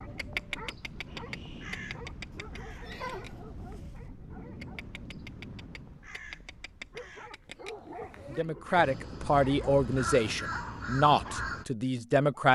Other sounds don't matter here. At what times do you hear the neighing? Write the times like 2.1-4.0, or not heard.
2.3-4.0.